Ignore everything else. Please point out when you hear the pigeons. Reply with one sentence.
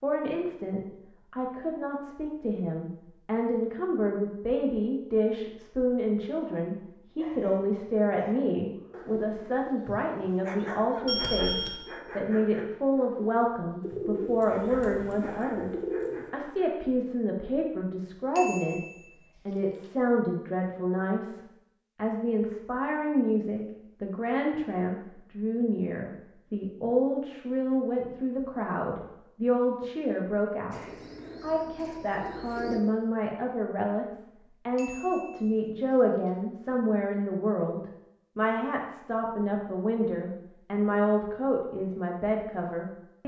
You can hear the pigeons from 13.8 to 16.3 s and from 30.7 to 32.8 s.